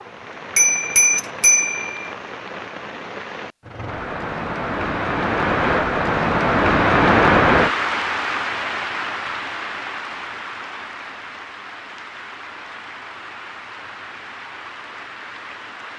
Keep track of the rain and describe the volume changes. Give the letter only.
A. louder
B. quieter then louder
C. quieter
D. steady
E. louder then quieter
E.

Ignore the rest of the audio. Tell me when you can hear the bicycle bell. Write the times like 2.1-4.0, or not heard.
0.6-2.1.